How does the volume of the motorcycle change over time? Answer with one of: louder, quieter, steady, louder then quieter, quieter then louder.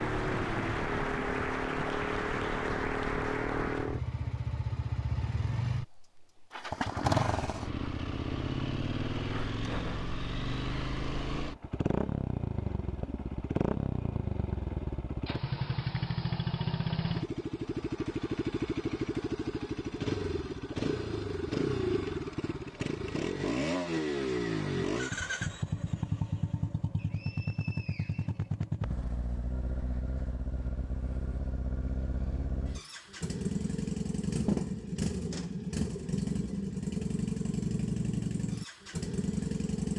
steady.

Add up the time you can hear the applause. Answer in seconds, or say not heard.
4 s.